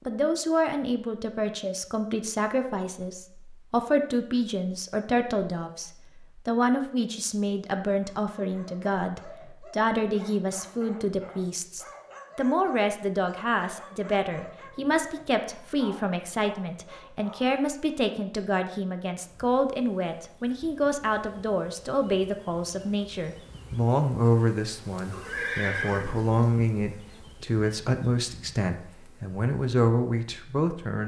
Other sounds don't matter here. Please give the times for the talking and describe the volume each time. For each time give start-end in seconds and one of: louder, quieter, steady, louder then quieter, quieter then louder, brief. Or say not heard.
0.1-31.0 steady.